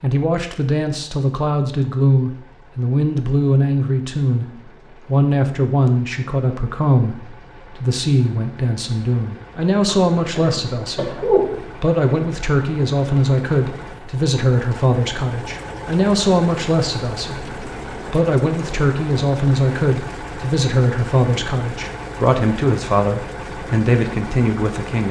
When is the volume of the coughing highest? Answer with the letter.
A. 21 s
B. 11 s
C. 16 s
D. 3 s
B.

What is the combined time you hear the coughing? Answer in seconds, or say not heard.
2 s.